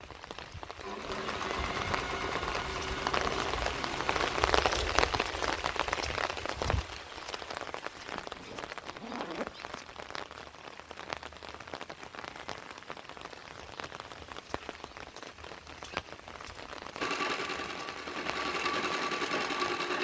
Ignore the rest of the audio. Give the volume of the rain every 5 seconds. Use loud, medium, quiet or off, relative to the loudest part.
loud, loud, medium, medium.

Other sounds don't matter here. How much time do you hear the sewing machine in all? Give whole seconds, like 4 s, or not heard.
7 s.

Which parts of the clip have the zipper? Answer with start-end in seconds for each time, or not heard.
8.0-9.8.